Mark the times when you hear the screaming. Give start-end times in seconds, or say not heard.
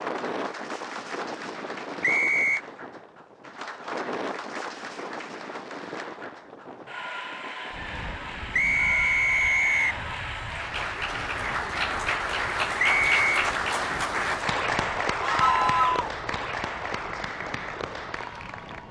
15.2-16.1.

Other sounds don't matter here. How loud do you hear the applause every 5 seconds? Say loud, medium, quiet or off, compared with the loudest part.
quiet, medium, loud, medium.